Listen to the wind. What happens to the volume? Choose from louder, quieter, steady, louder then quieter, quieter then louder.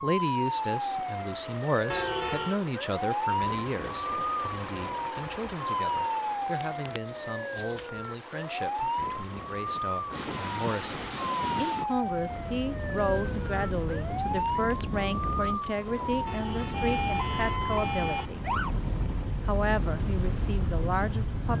steady.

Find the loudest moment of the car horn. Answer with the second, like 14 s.
2 s.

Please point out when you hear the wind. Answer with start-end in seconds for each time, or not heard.
10.1-21.5.